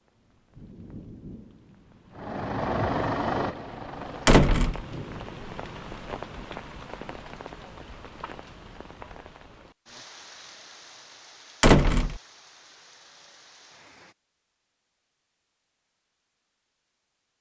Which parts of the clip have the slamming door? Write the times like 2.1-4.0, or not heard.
4.2-4.8, 11.6-12.2.